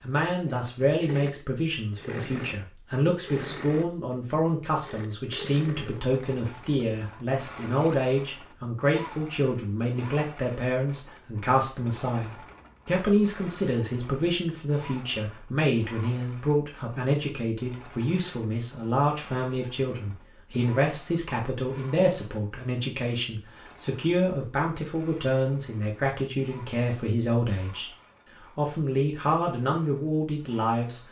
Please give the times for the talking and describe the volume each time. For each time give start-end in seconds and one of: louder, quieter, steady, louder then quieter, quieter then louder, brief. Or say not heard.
0.0-31.0 steady.